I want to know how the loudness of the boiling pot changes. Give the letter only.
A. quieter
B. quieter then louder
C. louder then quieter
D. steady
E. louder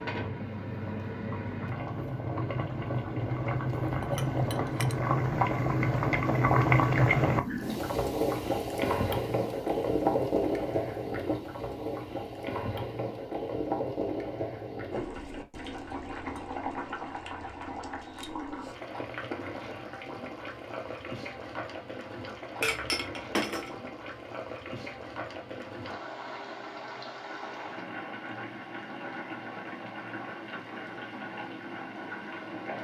A.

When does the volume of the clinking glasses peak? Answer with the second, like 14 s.
23 s.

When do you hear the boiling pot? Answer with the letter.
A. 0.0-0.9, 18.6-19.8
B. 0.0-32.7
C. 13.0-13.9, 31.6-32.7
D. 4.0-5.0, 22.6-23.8
B.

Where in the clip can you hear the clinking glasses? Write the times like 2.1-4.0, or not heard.
4.0-5.0, 22.6-23.8.